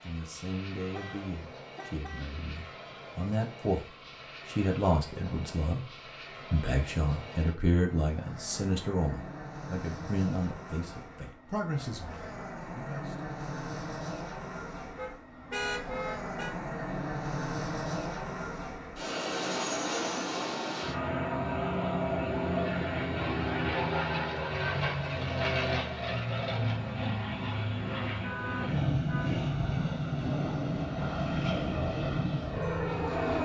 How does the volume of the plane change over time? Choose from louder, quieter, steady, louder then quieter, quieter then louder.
louder.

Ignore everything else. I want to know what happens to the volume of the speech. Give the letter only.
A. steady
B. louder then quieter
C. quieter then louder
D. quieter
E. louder
B.